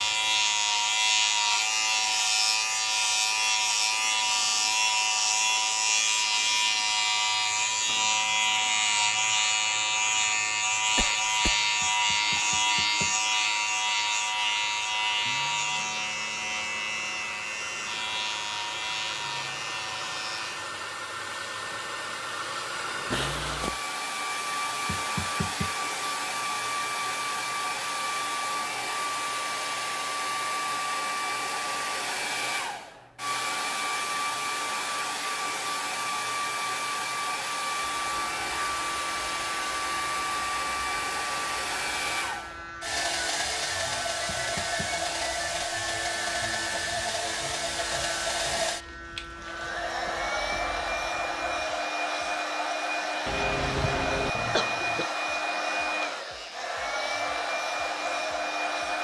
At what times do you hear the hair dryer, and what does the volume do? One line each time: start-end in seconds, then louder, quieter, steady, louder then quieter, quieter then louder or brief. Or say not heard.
0.0-58.9 louder.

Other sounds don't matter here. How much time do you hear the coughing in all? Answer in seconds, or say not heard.
3 s.